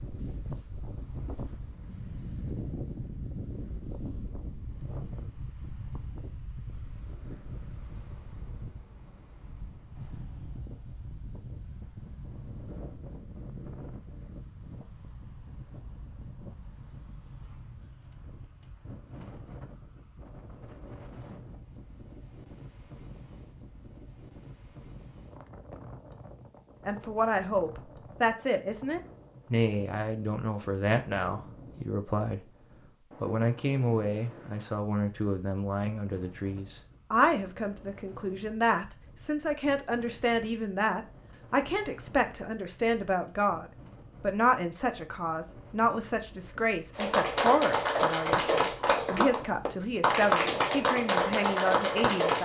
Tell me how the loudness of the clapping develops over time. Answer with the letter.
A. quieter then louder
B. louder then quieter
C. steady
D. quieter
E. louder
C.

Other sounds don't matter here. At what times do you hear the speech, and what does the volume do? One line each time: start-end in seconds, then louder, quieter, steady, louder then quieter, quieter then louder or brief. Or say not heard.
26.9-52.4 steady.